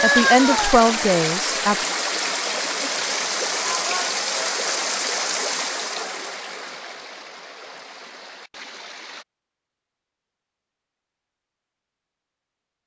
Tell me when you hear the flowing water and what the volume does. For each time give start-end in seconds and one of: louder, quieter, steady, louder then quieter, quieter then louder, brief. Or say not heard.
0.0-9.2 quieter.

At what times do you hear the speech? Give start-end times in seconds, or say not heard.
0.0-1.9.